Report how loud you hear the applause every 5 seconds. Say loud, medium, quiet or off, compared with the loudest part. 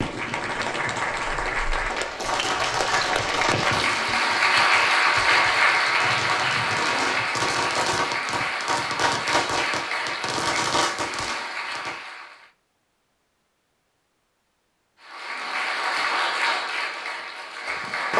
loud, loud, medium, loud.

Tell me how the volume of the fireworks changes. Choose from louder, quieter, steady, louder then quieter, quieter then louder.
louder.